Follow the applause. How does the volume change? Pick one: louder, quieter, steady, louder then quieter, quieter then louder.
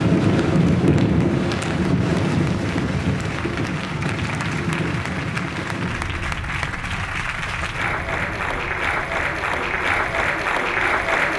louder.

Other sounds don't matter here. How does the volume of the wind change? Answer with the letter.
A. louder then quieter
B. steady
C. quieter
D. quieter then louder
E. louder
C.